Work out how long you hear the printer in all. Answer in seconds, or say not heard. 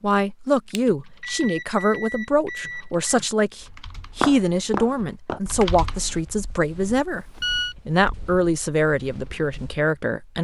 not heard.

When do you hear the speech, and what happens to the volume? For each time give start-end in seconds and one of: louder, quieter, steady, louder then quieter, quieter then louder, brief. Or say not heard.
0.0-10.3 steady.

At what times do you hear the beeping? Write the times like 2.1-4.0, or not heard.
0.7-3.1, 7.1-7.8.